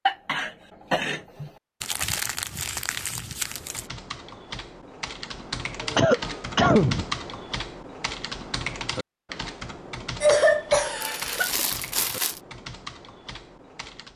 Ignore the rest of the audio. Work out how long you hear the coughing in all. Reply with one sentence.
The coughing can be heard for 4 seconds in total.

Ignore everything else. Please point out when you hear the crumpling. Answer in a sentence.
You can hear the crumpling from 1.8 to 3.9 s and from 11.0 to 12.4 s.